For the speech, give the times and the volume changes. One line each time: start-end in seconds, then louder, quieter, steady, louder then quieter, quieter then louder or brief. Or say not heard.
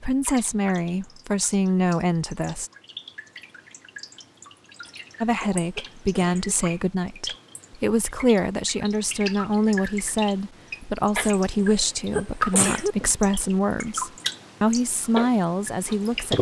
0.0-2.7 brief
5.2-16.3 steady.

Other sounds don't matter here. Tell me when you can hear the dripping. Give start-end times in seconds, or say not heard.
0.1-16.3.